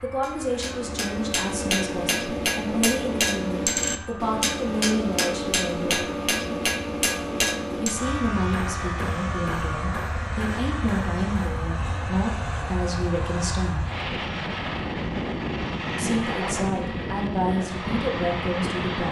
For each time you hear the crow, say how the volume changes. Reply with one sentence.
You can't hear the crow here.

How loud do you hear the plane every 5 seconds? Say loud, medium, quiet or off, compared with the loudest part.
quiet, medium, loud, loud.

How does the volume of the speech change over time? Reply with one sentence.
The volume of the speech stays about the same.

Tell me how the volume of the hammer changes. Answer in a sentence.
The volume of the hammer goes down.